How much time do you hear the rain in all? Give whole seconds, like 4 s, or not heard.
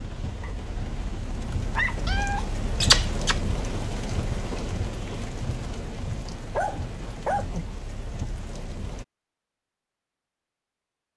9 s.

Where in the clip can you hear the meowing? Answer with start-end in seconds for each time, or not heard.
2.0-3.4.